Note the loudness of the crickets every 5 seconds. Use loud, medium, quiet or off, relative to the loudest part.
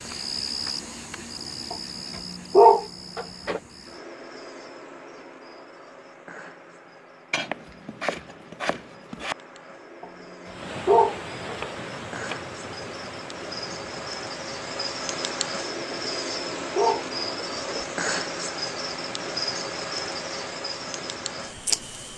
medium, quiet, medium, loud, loud.